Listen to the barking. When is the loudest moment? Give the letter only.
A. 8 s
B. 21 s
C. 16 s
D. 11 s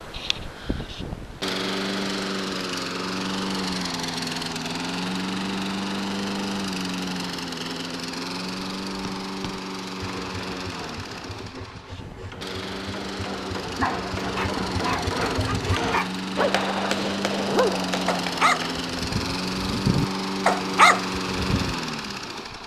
B.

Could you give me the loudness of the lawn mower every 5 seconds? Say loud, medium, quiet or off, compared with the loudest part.
loud, loud, medium, loud, loud.